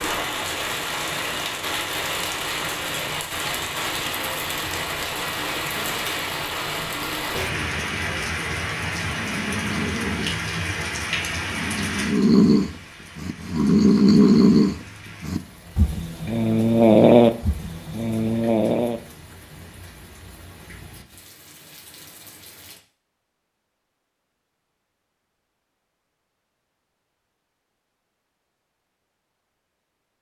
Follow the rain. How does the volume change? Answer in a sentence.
The volume of the rain goes down.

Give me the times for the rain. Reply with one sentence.
The rain can be heard from 0.0 to 22.8 s.